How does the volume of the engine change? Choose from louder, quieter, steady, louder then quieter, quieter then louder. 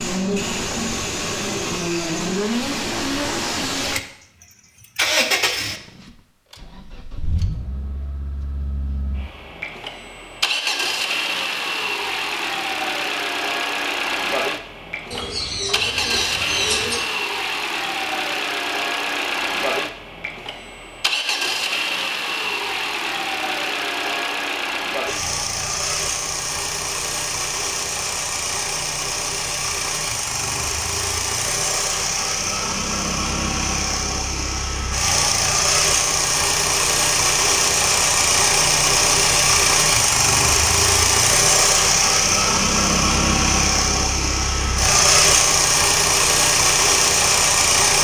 louder.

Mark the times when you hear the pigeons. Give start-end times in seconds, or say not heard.
15.1-17.0.